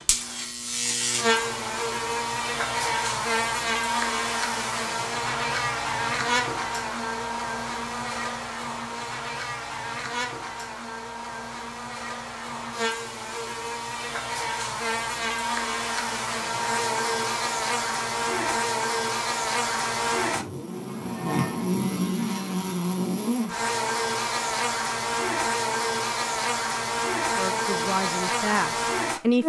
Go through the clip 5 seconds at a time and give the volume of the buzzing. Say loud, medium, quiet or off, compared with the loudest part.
loud, loud, medium, loud, loud, loud.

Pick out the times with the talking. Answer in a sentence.
You can hear the talking from 27.4 to 29.4 s.